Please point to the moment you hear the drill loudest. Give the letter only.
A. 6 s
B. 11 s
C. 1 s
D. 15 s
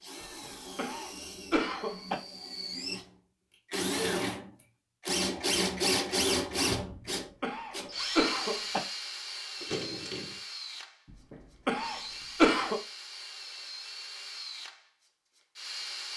A.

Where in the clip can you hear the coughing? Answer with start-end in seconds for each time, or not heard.
0.4-2.1, 7.0-8.8, 11.3-12.8.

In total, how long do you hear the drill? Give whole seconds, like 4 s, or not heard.
16 s.